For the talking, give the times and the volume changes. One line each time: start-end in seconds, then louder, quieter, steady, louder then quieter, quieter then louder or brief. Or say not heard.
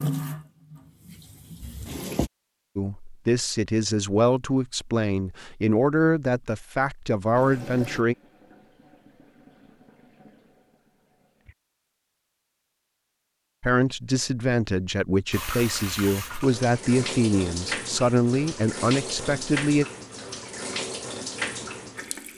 2.8-8.2 steady
13.6-19.9 steady.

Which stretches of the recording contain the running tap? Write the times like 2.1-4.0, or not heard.
0.0-2.3, 7.3-11.6, 15.3-22.3.